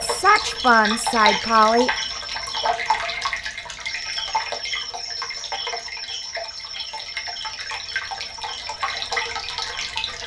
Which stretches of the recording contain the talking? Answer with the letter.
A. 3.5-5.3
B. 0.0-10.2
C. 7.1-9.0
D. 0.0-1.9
D.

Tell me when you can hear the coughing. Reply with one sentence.
You can't hear the coughing here.